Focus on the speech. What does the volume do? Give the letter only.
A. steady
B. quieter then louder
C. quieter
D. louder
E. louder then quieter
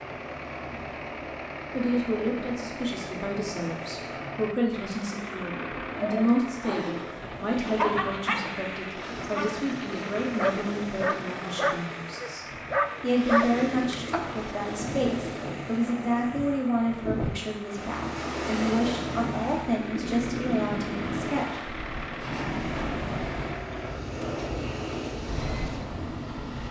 A.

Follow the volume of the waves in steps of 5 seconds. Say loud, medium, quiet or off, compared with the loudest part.
medium, medium, medium, loud, loud, loud.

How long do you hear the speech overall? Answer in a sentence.
The speech can be heard for 20 seconds in total.